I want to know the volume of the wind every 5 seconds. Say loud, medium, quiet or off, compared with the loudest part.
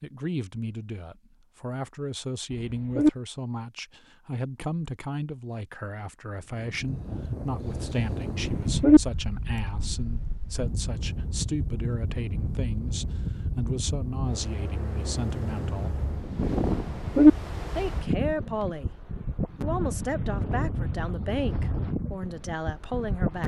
off, loud, loud, loud, loud.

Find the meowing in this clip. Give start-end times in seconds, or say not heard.
2.5-3.1, 8.4-9.0, 16.7-17.3.